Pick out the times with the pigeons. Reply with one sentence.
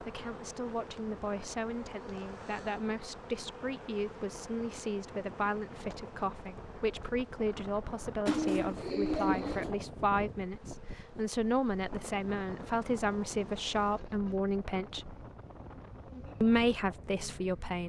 The pigeons can be heard from 8.2 to 9.8 s.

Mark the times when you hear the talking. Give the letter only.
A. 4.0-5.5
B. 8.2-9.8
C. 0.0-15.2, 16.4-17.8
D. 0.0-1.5
C.